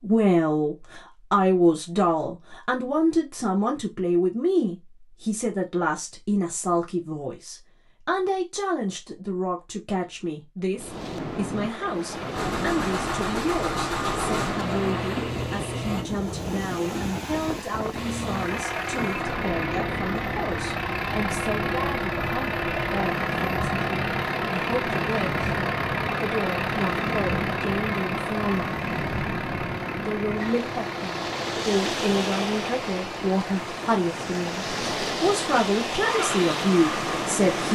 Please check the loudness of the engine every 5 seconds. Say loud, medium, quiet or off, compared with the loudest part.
off, off, loud, loud, loud, loud, medium, loud.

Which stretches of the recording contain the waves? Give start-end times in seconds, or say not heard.
10.8-37.7.